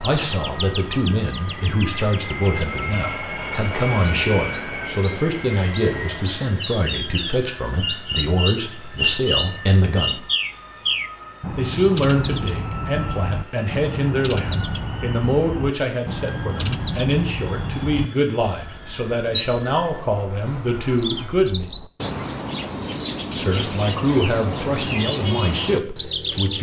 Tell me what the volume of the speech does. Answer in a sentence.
The volume of the speech stays about the same.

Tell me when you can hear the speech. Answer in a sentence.
The speech can be heard from 0.0 to 10.2 s, from 11.6 to 21.7 s and from 23.4 to 26.5 s.